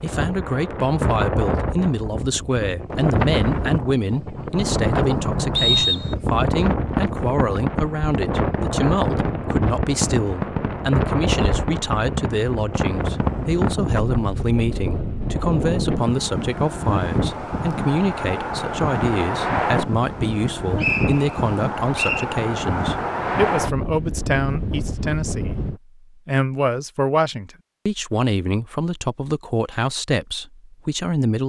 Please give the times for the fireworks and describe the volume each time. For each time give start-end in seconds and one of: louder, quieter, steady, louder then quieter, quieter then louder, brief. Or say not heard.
4.3-13.8 steady.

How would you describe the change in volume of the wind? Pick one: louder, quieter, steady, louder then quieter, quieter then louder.
steady.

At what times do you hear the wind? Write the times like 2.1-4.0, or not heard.
0.0-25.8.